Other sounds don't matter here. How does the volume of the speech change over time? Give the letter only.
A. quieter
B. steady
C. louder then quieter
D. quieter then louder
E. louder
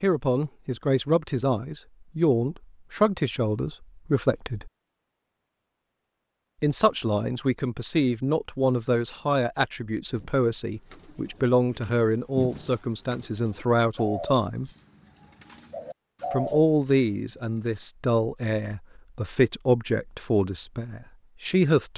B.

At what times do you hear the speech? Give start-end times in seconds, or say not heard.
0.0-4.7, 6.6-14.7, 16.3-21.9.